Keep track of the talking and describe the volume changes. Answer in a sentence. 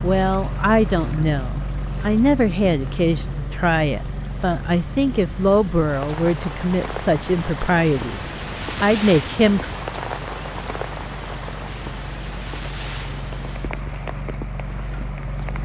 The loudness of the talking stays about the same.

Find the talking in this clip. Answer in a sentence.
The talking can be heard from 0.0 to 9.7 s.